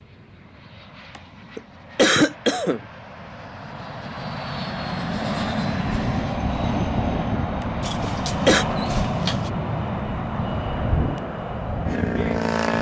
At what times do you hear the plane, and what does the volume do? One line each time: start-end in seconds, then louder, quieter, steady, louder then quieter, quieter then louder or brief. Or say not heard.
0.0-12.7 louder.